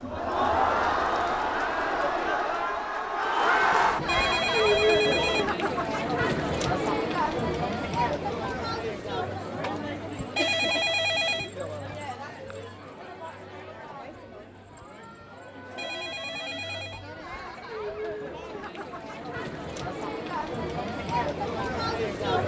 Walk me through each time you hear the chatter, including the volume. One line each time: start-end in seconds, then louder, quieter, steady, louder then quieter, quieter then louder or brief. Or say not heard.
0.0-22.4 quieter then louder.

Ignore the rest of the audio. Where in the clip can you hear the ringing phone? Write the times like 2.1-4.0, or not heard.
4.0-5.5, 10.3-11.5, 15.8-17.1.